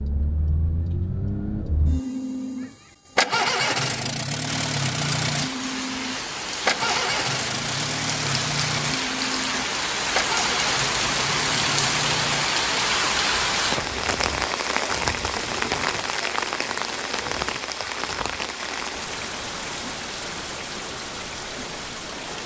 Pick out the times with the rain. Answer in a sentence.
You can hear the rain from 4.5 to 22.4 s.